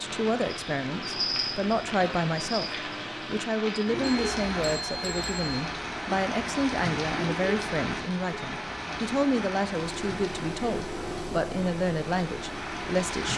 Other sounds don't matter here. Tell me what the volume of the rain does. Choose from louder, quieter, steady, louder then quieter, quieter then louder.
quieter.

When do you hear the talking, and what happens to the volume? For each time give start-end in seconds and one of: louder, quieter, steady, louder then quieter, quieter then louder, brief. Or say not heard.
0.0-2.6 brief
3.2-13.3 steady.